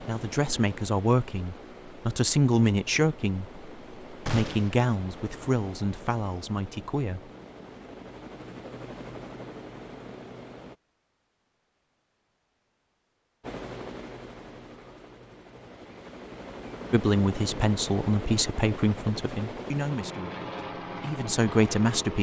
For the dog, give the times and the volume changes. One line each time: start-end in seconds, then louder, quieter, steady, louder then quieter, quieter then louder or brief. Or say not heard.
not heard.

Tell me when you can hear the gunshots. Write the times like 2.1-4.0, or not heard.
4.2-4.8.